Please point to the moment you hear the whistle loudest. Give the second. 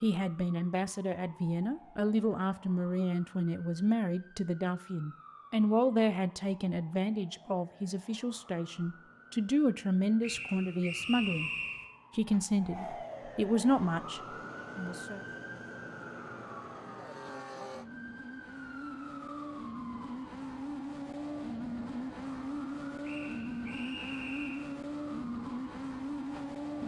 11 s.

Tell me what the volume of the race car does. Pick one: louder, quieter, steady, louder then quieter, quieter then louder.
louder.